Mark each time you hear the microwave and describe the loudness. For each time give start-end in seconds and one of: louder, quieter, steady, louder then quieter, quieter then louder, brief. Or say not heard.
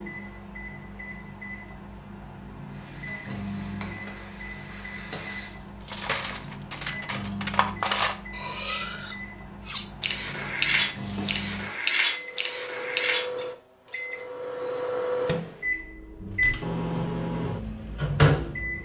0.0-18.8 louder.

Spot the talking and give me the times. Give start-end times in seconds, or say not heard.
not heard.